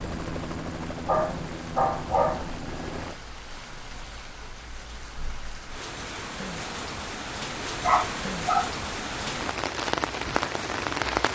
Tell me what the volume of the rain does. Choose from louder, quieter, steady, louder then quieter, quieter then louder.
louder.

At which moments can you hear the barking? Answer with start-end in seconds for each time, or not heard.
1.1-2.6, 7.8-8.7.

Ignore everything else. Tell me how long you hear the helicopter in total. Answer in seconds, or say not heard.
3 s.